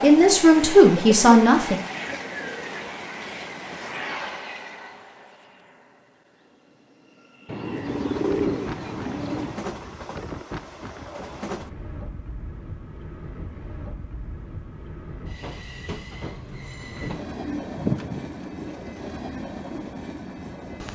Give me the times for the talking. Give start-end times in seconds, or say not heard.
0.0-1.8.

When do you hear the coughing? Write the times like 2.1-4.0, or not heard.
not heard.